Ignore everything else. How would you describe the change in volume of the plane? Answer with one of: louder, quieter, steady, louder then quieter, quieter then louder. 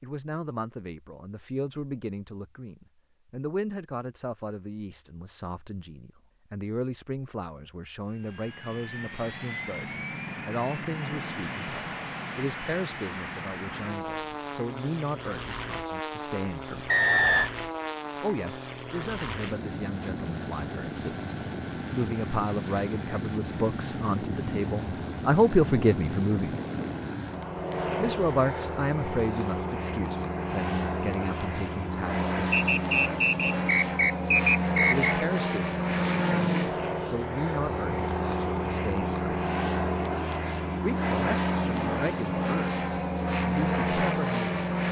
louder.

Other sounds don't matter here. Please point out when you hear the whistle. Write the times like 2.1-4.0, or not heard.
16.9-17.5, 32.5-35.1.